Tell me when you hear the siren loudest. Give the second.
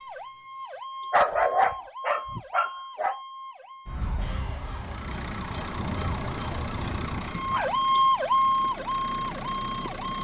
8 s.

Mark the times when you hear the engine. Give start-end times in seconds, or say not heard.
4.7-10.1.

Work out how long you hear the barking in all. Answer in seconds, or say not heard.
4 s.